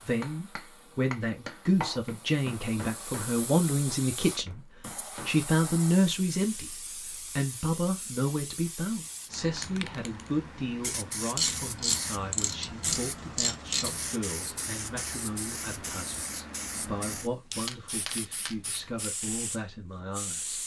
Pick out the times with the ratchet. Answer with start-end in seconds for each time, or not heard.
11.3-14.1.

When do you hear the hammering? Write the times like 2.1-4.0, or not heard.
0.0-5.5.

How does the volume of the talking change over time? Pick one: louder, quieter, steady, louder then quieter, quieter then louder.
quieter.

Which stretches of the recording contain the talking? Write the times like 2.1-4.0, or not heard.
0.0-4.7, 5.2-20.6.